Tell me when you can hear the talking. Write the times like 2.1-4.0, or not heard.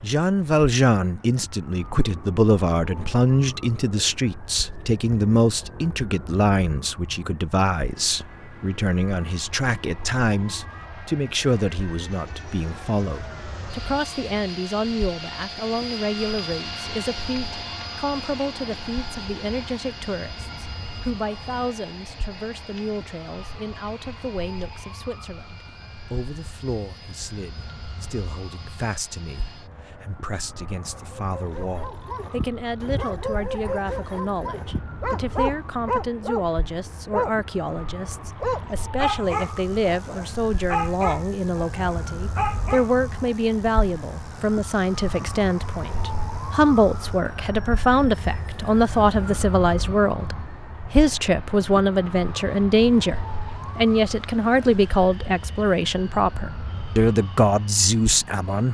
0.0-58.6.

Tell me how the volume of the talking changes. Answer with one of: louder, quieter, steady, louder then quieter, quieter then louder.
quieter then louder.